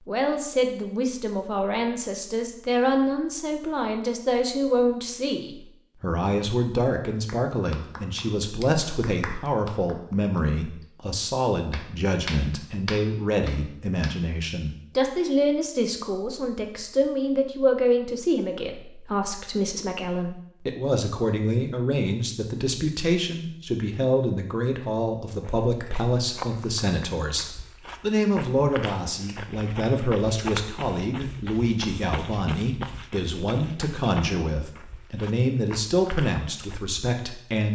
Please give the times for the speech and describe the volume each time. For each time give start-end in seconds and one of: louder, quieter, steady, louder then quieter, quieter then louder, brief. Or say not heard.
0.1-37.7 steady.